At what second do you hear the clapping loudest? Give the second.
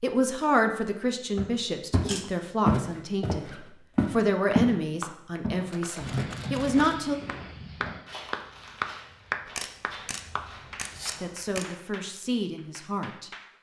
9 s.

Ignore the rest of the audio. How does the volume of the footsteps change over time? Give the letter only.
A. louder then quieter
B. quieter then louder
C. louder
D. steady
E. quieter
E.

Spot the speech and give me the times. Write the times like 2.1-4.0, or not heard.
0.0-7.2, 11.2-13.3.